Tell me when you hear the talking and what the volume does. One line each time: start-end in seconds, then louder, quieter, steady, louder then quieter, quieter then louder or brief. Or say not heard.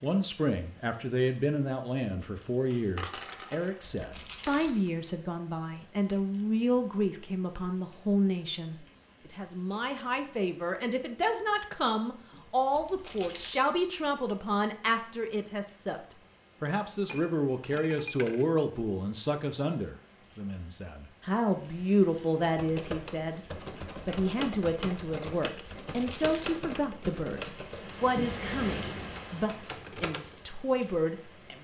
0.0-31.5 steady.